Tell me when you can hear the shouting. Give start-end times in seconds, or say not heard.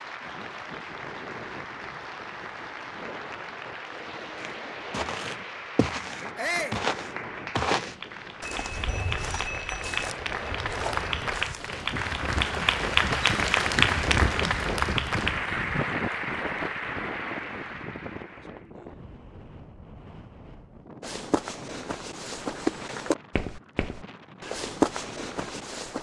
6.3-6.8.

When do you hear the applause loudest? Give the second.
13 s.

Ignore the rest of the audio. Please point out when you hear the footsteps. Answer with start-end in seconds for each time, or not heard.
4.3-11.7, 21.0-25.9.